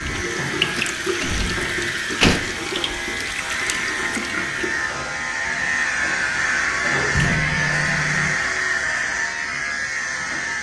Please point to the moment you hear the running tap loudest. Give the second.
1 s.